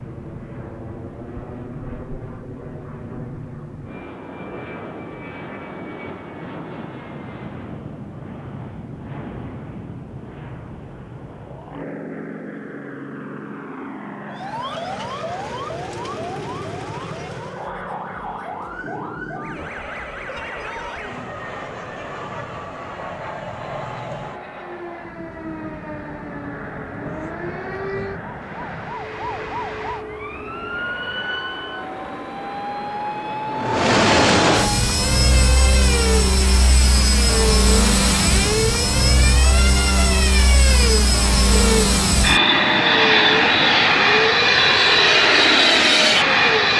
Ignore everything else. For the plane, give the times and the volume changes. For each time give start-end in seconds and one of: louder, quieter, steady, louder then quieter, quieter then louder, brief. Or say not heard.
0.0-46.7 louder.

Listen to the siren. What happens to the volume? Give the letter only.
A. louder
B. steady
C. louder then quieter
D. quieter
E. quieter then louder
A.